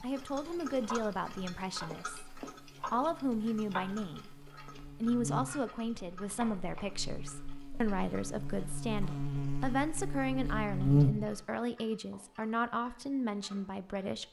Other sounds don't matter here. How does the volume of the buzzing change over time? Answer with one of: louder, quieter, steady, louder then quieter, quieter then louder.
louder.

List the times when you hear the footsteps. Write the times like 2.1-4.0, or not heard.
not heard.